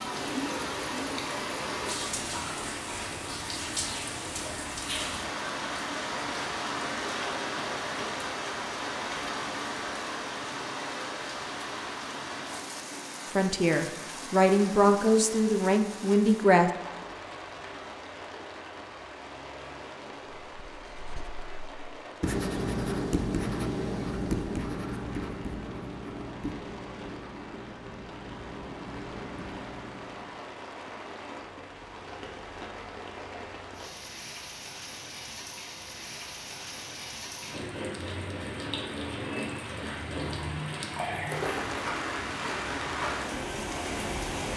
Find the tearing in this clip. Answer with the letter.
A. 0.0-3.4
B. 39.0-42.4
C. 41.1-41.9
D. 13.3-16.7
C.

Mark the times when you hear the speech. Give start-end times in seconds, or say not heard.
13.3-16.7.